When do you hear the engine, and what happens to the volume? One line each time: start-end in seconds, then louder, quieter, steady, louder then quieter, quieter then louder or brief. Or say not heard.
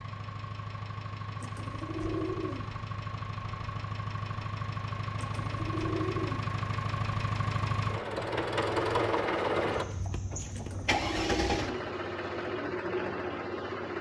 0.0-13.9 louder.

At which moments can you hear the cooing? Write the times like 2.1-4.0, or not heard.
1.4-2.8, 5.2-6.5, 10.6-11.8.